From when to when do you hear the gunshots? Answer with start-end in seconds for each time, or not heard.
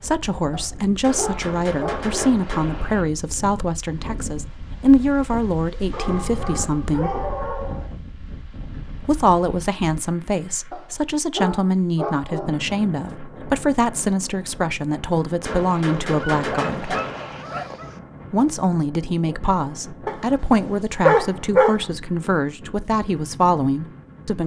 1.0-3.0, 15.4-17.4.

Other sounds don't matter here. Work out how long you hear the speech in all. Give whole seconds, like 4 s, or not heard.
21 s.